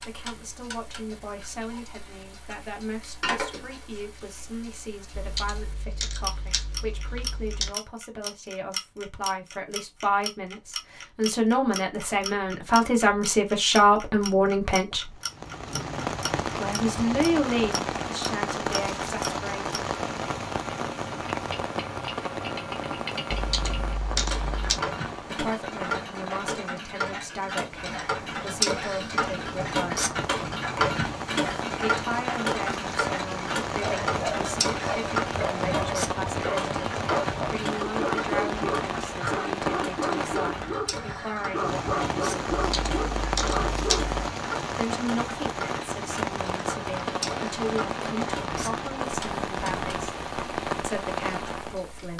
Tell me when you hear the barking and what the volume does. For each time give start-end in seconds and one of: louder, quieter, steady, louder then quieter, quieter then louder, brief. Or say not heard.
33.7-44.2 steady.